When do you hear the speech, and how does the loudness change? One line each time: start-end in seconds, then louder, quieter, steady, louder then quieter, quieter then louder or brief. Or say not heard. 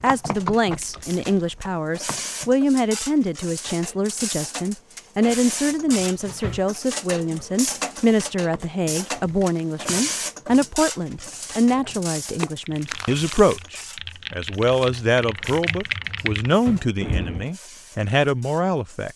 0.0-19.1 steady.